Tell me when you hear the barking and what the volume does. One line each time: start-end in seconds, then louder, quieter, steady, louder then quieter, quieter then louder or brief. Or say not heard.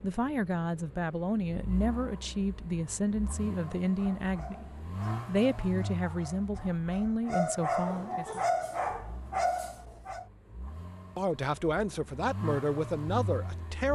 3.8-10.2 louder.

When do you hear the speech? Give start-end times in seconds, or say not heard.
0.0-8.4, 11.2-13.8.